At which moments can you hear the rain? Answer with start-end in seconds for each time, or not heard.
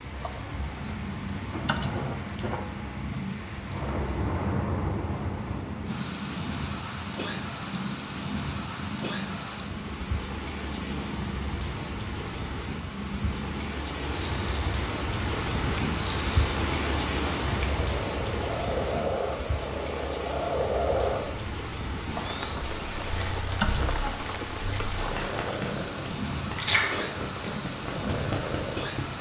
0.0-29.1.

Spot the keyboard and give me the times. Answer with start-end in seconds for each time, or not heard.
0.2-1.9, 22.1-23.9.